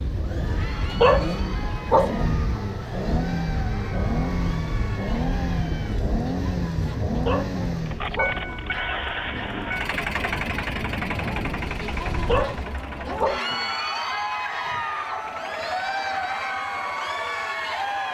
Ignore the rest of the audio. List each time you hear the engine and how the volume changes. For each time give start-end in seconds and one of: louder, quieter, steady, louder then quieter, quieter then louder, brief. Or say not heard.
0.0-18.0 quieter.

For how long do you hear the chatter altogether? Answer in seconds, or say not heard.
18 s.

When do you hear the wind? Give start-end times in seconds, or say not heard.
0.0-12.8.